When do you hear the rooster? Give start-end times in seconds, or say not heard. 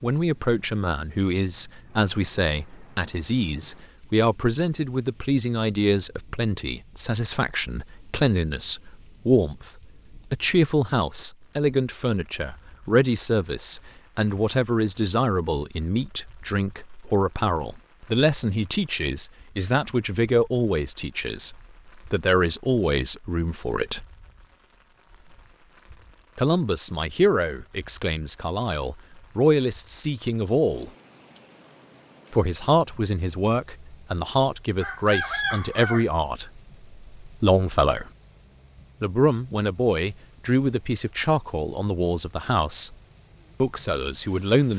34.8-36.0.